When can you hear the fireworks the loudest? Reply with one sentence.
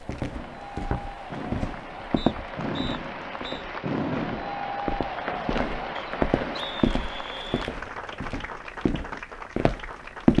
The volume of the fireworks peaks at 4 seconds.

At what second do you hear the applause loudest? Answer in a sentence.
The volume of the applause peaks at 5 seconds.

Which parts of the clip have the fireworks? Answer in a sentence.
The fireworks can be heard from 0.2 to 6.8 s.